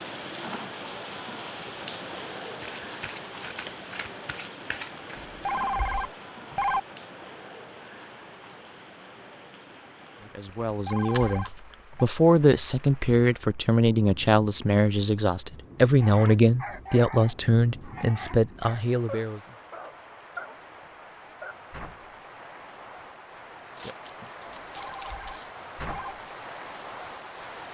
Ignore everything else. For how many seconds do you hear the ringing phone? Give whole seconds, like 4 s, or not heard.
4 s.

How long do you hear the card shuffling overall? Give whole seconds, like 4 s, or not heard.
5 s.